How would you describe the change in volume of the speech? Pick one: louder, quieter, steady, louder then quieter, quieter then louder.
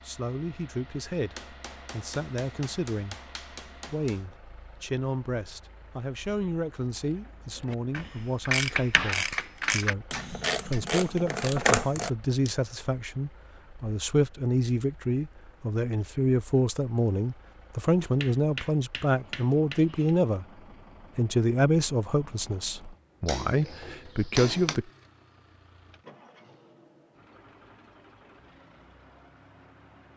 louder.